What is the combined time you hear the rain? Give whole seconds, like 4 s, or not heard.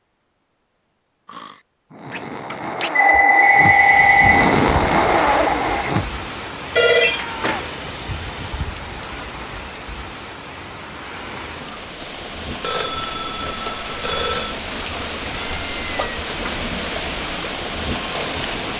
15 s.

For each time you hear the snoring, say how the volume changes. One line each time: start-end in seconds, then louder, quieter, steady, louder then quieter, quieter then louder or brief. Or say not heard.
1.2-6.1 louder.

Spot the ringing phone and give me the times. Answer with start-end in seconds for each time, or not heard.
2.0-4.5, 6.8-7.7, 12.6-14.6.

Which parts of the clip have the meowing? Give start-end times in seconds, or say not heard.
2.1-2.9, 6.7-8.7, 15.5-16.2.